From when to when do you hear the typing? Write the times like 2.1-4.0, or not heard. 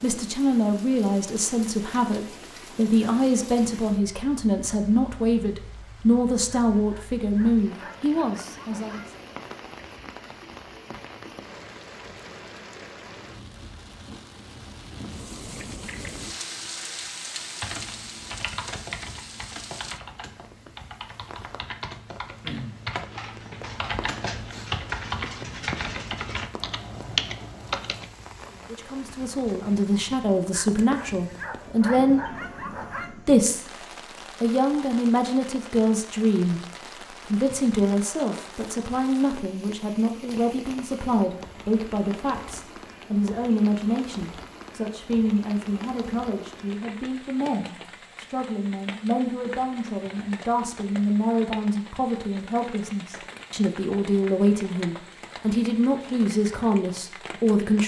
17.6-28.1.